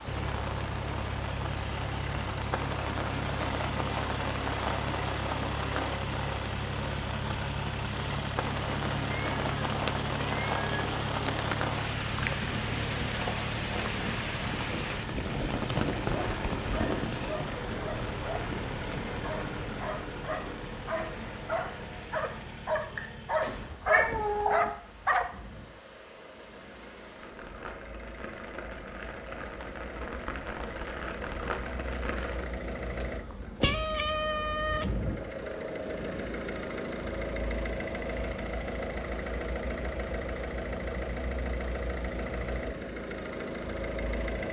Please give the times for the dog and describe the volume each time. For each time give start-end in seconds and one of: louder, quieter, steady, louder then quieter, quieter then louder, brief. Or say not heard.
16.1-18.4 brief
19.2-25.2 louder.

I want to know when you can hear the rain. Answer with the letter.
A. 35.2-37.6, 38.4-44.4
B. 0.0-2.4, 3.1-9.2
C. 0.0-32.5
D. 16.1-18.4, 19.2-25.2
C.